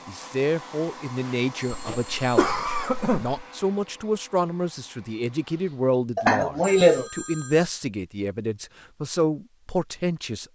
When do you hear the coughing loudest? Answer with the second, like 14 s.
7 s.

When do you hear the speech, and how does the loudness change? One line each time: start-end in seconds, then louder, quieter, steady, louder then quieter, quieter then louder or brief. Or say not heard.
0.1-10.5 steady.